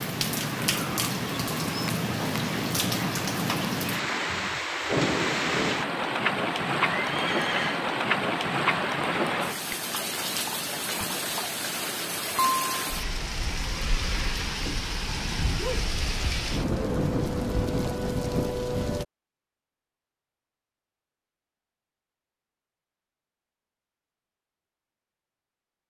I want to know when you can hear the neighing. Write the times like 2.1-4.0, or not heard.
7.0-7.8.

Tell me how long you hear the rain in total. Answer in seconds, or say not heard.
19 s.